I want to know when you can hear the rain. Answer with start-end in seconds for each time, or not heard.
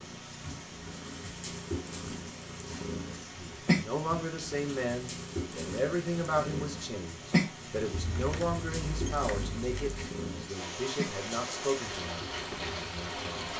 0.0-13.5.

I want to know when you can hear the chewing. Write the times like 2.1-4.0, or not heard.
not heard.